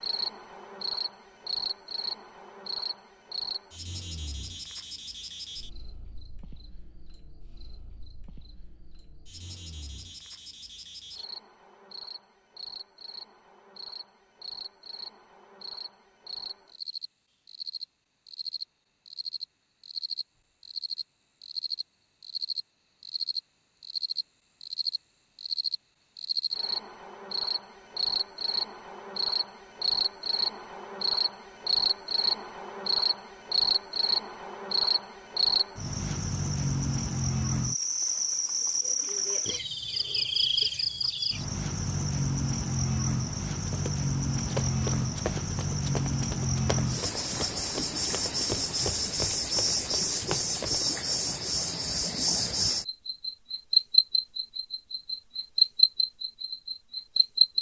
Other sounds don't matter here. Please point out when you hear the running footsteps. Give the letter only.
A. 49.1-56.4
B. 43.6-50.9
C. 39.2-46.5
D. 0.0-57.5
B.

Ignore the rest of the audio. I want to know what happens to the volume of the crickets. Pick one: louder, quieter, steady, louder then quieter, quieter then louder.
louder.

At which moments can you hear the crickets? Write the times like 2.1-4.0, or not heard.
0.0-57.5.